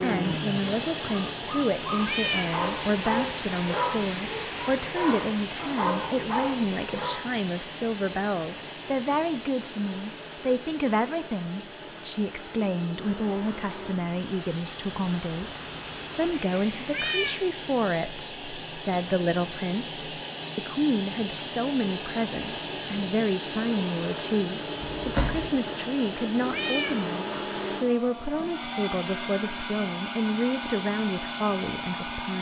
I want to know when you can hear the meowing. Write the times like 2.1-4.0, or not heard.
2.0-2.5, 16.9-17.4, 26.5-26.9.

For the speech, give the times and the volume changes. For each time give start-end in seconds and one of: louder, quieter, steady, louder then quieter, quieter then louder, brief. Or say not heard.
0.0-32.3 steady.